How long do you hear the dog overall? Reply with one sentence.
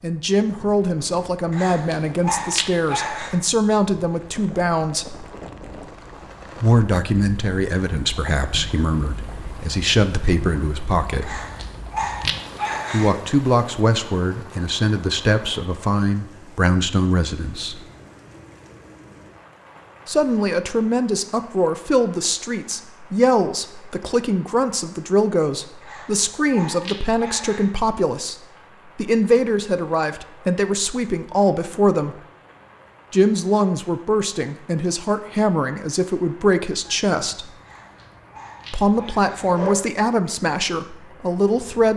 You can hear the dog for 8 seconds altogether.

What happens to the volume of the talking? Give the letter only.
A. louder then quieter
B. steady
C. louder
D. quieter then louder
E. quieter
B.